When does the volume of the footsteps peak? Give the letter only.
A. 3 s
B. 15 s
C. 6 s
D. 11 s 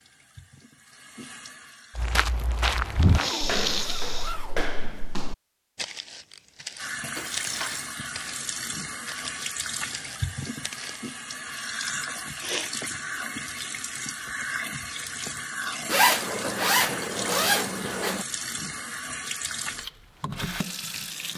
A.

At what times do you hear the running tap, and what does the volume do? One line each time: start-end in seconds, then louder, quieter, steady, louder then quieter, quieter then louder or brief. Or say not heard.
0.0-2.2 brief
6.8-21.3 steady.